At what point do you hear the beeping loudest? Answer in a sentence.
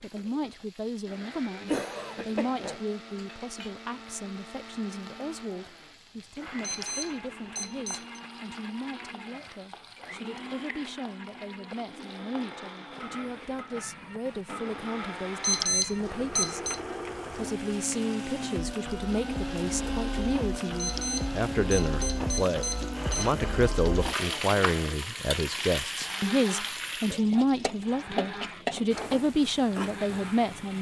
The loudest moment of the beeping is at 16 seconds.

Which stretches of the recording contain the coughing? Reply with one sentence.
The coughing can be heard from 1.6 to 2.8 s.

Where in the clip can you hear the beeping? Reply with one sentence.
You can hear the beeping from 6.6 to 8.2 s, from 15.4 to 16.8 s and from 20.8 to 23.4 s.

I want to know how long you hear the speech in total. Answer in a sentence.
The speech can be heard for 30 seconds in total.